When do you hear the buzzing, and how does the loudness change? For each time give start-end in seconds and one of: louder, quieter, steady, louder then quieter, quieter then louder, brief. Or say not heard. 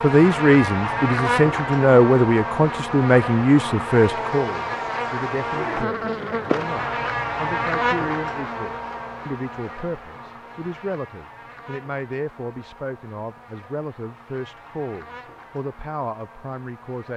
0.0-17.1 quieter.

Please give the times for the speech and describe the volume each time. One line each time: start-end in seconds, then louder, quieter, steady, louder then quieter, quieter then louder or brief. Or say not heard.
0.0-17.1 quieter.